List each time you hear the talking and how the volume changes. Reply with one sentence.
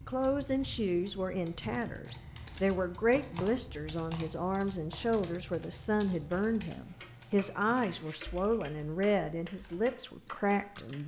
You can hear the talking from 0.1 to 11.0 s, at a steady volume.